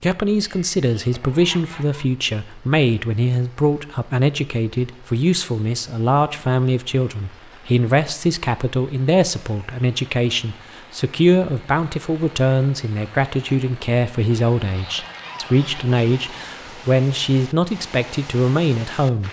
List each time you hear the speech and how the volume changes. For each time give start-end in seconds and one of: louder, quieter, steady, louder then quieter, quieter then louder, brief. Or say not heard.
0.0-19.2 steady.